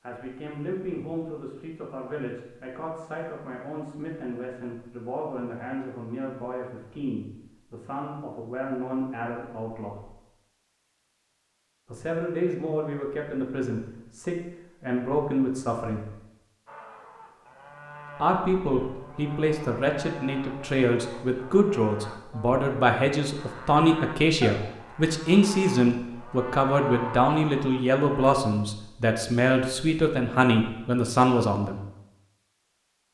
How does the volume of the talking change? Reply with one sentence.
The loudness of the talking goes up.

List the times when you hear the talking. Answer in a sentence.
You can hear the talking from 0.0 to 10.1 s, from 11.8 to 16.1 s and from 18.2 to 31.8 s.